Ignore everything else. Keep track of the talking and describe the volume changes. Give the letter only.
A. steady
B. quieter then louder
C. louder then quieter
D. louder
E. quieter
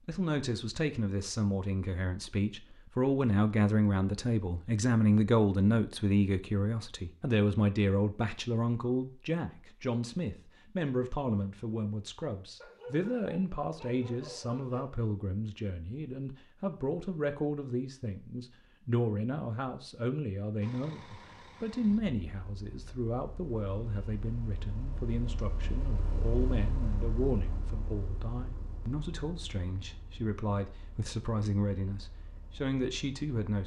E.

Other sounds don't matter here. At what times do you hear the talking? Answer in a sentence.
The talking can be heard from 0.1 to 33.6 s.